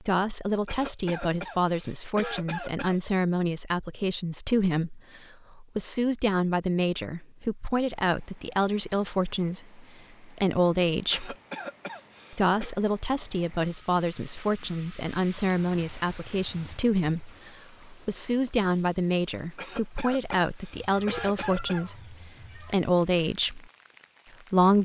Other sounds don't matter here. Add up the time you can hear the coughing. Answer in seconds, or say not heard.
6 s.